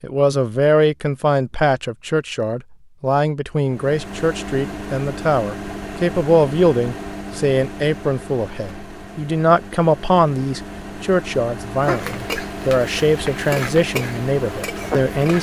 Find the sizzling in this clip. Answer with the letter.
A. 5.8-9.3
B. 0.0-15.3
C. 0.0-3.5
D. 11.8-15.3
D.